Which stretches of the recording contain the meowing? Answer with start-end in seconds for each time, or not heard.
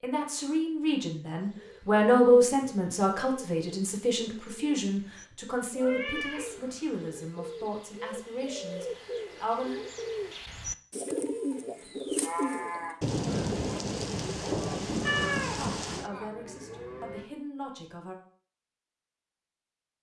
5.8-7.2, 15.1-15.6.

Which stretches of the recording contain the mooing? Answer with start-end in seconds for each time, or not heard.
11.8-17.2.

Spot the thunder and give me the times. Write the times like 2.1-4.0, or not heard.
13.0-16.1.